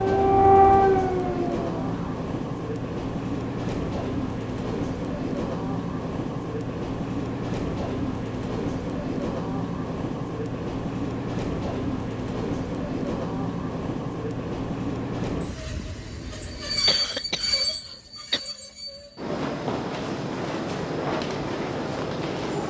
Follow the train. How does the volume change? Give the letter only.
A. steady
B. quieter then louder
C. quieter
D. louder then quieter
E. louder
A.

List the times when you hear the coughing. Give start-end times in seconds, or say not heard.
16.9-18.4.